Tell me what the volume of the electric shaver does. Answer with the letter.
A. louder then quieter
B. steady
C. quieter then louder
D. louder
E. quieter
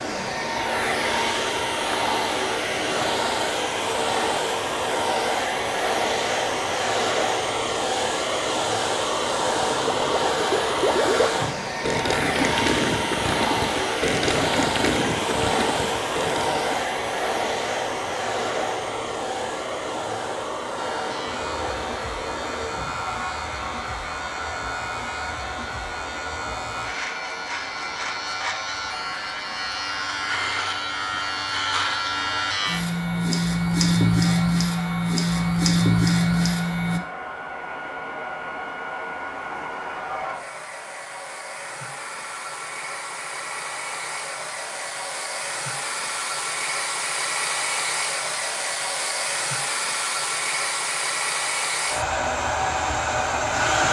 D.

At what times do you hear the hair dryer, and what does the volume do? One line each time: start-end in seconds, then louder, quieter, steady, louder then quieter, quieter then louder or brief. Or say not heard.
0.0-53.8 quieter then louder.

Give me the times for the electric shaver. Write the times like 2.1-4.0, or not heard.
20.8-37.0.